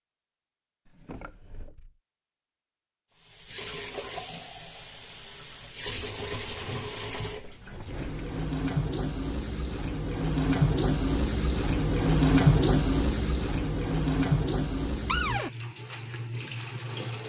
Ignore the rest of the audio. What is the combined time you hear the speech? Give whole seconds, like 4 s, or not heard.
not heard.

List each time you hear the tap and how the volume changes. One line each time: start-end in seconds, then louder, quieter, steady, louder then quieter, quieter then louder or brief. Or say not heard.
3.1-17.2 louder then quieter.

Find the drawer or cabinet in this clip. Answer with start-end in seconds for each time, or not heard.
0.8-2.0, 5.8-8.4, 15.1-15.5.